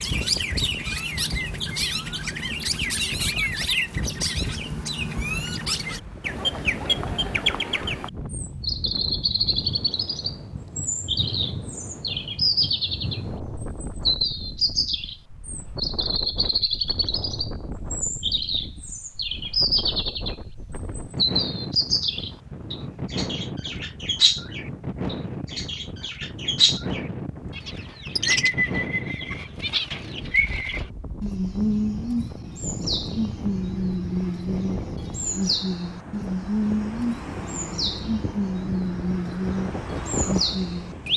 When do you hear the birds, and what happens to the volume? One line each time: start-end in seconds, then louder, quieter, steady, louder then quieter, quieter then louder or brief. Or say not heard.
0.0-41.1 steady.